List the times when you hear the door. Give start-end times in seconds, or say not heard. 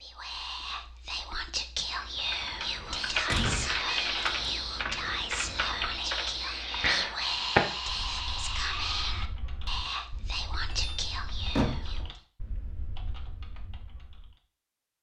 3.2-4.6, 10.7-12.1.